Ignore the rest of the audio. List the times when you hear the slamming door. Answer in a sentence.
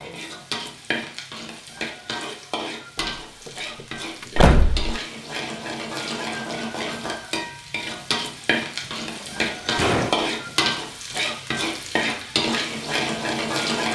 You can hear the slamming door from 3.0 to 5.0 s and from 8.8 to 10.6 s.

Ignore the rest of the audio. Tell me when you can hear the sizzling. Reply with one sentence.
You can hear the sizzling from 0.0 to 13.9 s.